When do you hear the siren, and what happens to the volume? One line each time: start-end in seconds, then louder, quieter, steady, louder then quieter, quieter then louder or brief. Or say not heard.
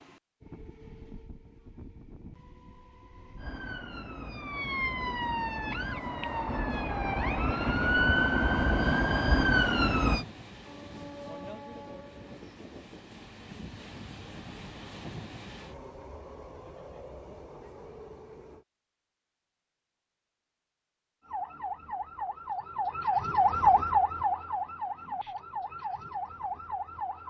3.4-10.2 louder
21.2-27.2 louder then quieter.